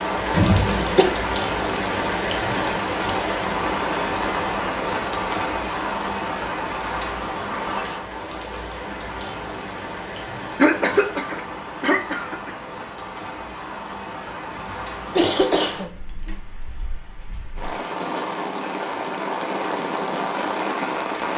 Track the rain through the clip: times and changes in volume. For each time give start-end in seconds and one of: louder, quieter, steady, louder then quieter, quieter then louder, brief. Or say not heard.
0.0-21.3 quieter then louder.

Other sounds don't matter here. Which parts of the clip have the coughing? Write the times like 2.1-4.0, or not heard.
0.3-1.1, 10.6-12.5, 14.5-16.4.